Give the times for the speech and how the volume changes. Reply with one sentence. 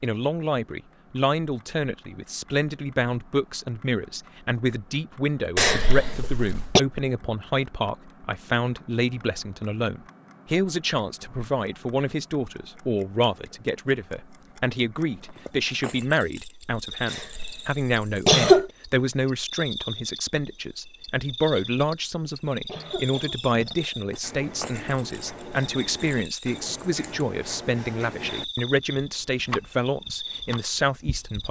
You can hear the speech from 0.0 to 31.4 s, at a steady volume.